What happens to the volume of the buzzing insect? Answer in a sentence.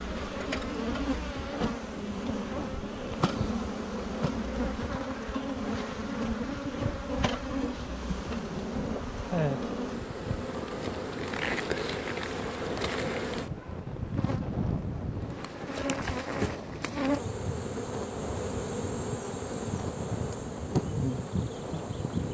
The loudness of the buzzing insect stays about the same.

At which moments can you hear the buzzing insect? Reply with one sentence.
The buzzing insect can be heard from 0.0 to 22.2 s.